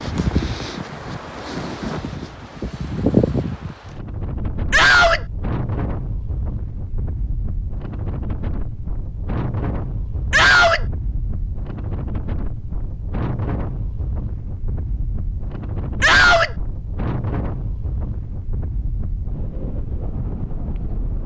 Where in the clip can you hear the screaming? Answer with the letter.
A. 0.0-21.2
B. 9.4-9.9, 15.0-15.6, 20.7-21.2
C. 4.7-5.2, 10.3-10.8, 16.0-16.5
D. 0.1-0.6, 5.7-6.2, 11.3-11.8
C.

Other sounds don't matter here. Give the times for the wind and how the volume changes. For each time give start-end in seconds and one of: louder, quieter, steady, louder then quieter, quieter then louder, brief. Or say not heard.
0.0-21.2 quieter.